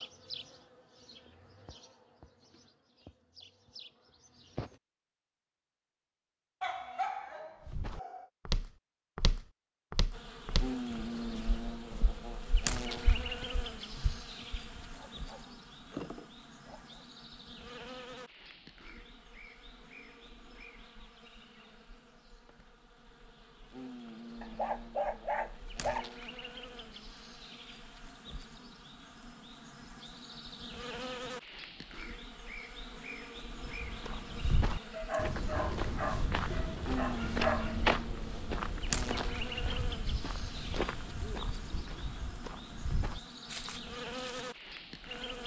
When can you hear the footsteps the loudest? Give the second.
38 s.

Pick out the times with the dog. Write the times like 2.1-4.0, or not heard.
6.6-8.2, 14.6-16.8, 24.4-26.1, 34.9-37.8.